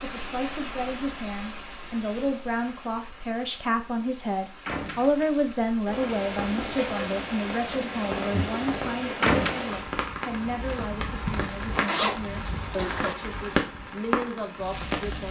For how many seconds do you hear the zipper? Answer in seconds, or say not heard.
2 s.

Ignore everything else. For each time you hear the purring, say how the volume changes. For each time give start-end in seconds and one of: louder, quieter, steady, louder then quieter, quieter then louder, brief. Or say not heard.
not heard.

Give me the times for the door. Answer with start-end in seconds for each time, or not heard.
4.7-5.2, 9.2-9.6.